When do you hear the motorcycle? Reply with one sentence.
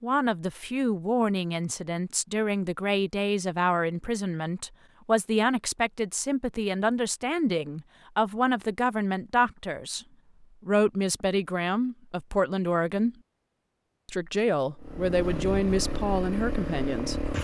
The motorcycle can be heard from 14.8 to 17.3 s.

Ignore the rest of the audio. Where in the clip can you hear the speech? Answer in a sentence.
The speech can be heard from 0.0 to 13.2 s and from 14.1 to 17.2 s.